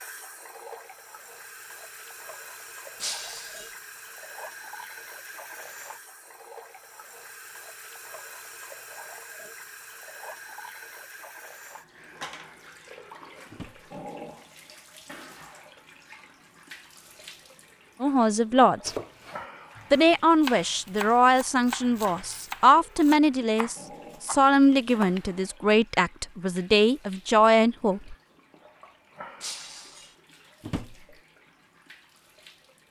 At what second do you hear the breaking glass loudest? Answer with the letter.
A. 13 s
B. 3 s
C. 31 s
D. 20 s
B.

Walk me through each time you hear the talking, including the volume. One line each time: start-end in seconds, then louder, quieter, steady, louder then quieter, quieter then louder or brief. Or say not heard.
18.0-18.9 brief
19.9-28.1 steady.